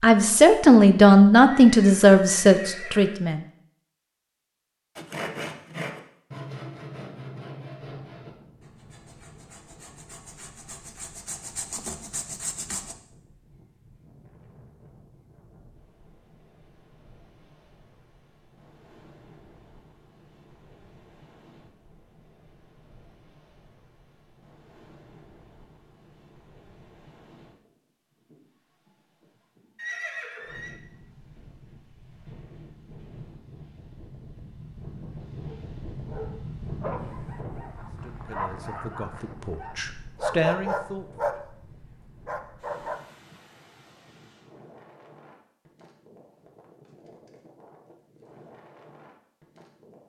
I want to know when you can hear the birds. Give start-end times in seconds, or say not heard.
not heard.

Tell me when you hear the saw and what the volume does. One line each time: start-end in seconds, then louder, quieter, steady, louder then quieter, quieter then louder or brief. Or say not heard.
5.0-12.9 quieter then louder.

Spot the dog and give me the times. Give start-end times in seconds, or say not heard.
35.5-43.0.